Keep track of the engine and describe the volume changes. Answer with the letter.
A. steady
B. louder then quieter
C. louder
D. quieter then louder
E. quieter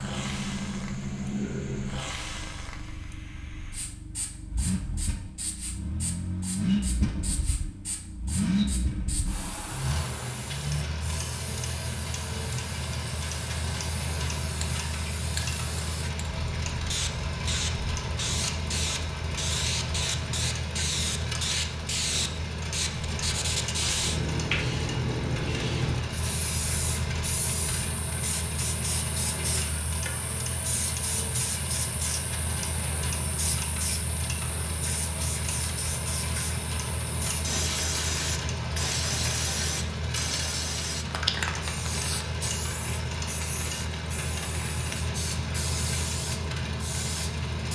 A.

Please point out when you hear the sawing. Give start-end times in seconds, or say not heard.
not heard.